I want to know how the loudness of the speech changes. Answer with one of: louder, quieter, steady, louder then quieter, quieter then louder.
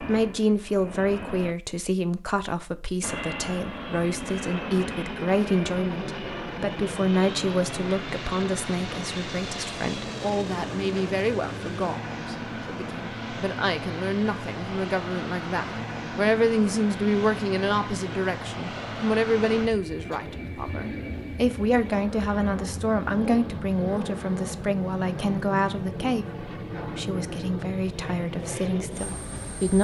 steady.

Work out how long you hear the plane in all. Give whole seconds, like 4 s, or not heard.
28 s.